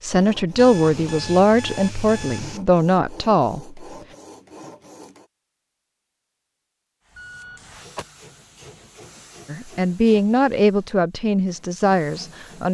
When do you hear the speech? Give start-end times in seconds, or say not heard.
0.0-3.8, 9.5-12.6.